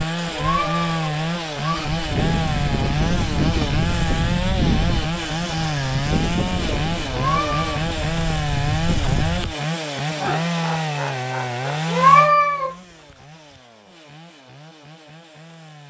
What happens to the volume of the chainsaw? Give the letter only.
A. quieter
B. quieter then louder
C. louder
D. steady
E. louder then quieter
A.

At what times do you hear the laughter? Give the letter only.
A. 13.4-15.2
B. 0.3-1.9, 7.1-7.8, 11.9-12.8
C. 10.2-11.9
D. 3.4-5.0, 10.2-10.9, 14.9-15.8
C.